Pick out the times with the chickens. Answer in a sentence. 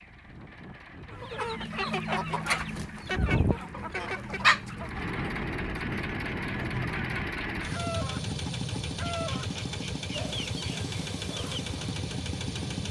The chickens can be heard from 1.1 to 12.0 s.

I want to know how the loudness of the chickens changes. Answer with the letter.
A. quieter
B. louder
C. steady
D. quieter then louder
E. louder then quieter
A.